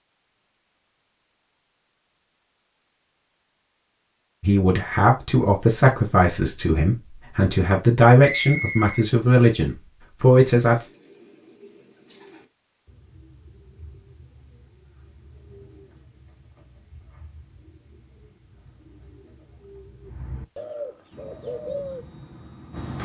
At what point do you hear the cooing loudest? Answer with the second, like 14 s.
22 s.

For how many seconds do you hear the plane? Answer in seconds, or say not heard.
2 s.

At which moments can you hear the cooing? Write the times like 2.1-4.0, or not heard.
10.7-22.1.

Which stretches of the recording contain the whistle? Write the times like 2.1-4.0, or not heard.
8.2-9.1.